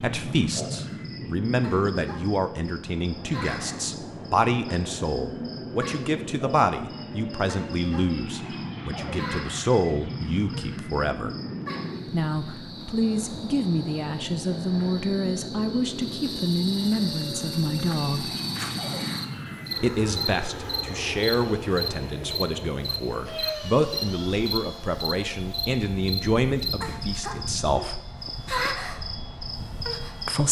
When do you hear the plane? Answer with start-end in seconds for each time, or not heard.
0.0-30.4.